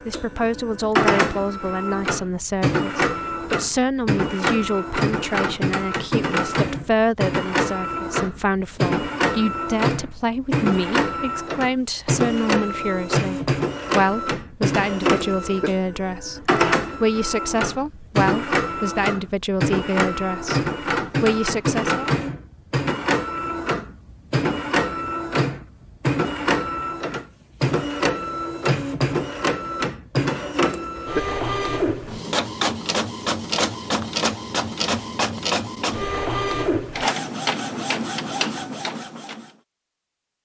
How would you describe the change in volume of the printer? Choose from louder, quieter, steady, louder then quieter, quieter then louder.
steady.